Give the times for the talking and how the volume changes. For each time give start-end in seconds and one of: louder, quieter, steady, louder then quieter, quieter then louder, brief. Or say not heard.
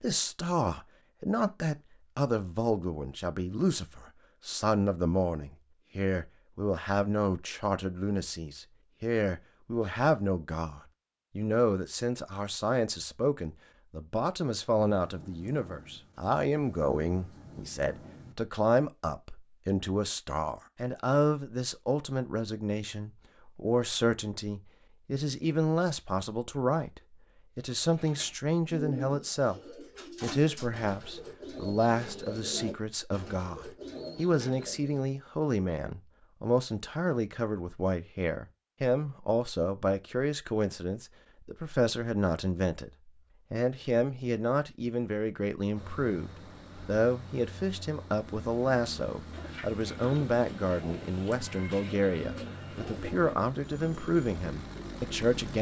0.0-29.6 steady
30.2-55.5 steady.